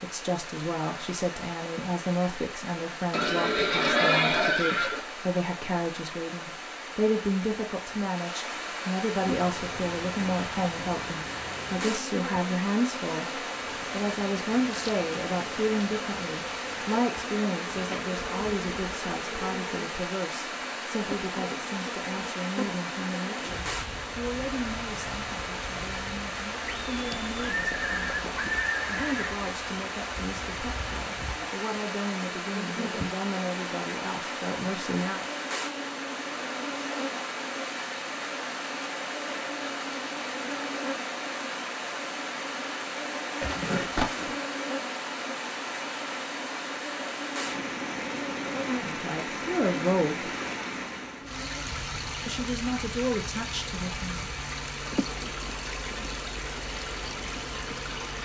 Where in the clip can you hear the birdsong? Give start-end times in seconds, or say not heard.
not heard.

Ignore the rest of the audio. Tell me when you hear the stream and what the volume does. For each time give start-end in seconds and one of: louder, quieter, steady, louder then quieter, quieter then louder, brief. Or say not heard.
0.0-58.1 steady.